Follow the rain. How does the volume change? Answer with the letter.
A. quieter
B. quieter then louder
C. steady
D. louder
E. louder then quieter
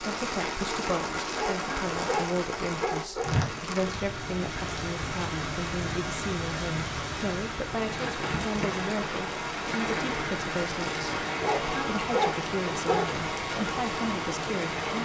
C.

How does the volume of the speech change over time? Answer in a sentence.
The loudness of the speech stays about the same.